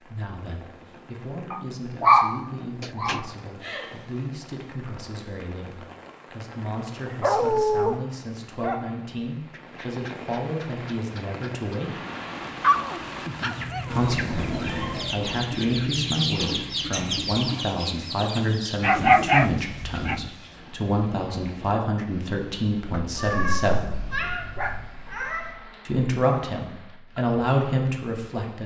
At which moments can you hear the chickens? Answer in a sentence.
The chickens can be heard from 13.5 to 18.9 s.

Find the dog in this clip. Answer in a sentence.
You can hear the dog from 1.5 to 3.2 s, from 7.2 to 8.0 s, from 12.6 to 14.2 s, from 18.8 to 20.3 s and from 22.9 to 24.9 s.